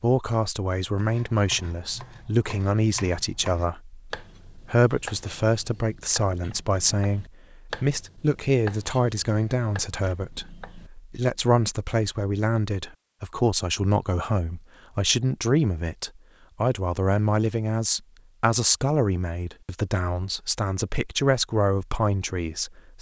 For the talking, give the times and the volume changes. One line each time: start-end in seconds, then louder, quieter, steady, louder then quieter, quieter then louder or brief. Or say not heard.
0.0-22.9 steady.